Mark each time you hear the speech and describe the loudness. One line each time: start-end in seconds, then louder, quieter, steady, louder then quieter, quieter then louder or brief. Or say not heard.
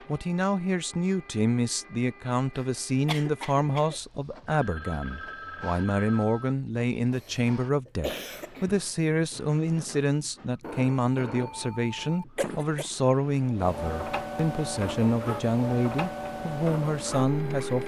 0.1-17.8 steady.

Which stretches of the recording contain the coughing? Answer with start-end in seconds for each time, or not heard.
2.5-4.0, 7.2-8.8, 12.3-12.9.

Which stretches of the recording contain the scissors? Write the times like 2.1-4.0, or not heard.
not heard.